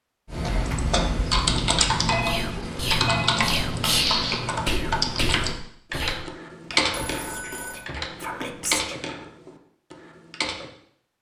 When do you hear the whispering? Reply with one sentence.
You can hear the whispering from 2.2 to 8.9 s.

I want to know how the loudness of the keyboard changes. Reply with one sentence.
The loudness of the keyboard goes down.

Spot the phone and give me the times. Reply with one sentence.
You can hear the phone from 2.0 to 3.3 s and from 6.9 to 7.8 s.